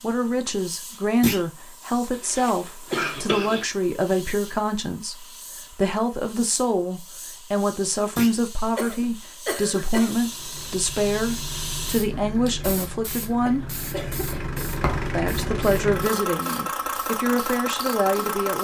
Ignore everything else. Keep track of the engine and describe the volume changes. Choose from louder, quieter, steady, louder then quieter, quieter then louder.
louder.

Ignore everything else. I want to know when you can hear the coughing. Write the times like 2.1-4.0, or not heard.
2.2-3.6, 8.8-10.2, 13.4-14.6.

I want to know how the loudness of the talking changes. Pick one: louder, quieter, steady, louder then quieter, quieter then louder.
steady.